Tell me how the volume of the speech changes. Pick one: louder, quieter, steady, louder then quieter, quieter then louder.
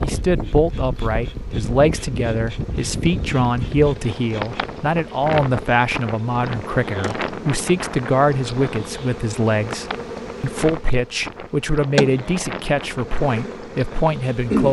steady.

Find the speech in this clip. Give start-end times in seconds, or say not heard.
0.0-14.6.